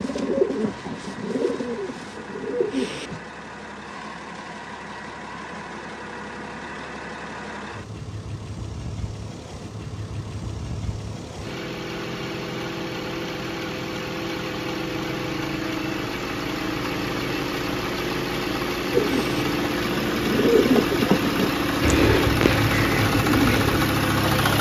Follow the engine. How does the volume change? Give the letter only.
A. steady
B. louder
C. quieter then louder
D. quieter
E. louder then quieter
B.